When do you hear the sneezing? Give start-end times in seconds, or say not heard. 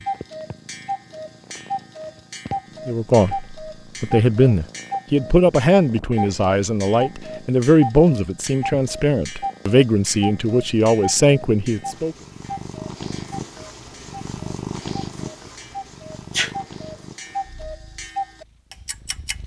16.3-16.9.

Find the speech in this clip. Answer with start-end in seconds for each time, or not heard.
2.9-12.2.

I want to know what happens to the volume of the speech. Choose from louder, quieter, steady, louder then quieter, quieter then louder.
steady.